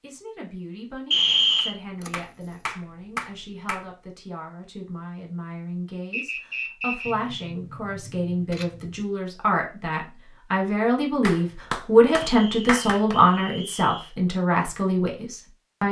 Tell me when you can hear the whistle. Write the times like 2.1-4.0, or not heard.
1.1-1.8, 6.1-7.2, 12.2-14.1.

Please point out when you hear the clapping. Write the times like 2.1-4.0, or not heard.
1.6-3.9, 11.2-13.2.